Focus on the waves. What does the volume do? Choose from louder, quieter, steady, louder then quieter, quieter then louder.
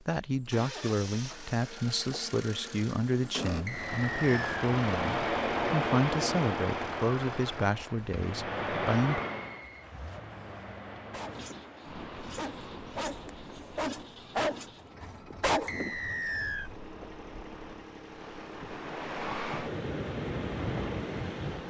quieter then louder.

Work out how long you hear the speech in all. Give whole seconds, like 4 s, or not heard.
9 s.